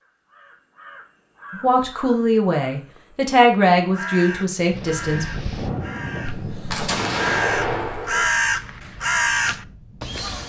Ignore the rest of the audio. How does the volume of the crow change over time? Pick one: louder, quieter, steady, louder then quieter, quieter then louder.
louder.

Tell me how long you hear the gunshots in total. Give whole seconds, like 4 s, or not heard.
2 s.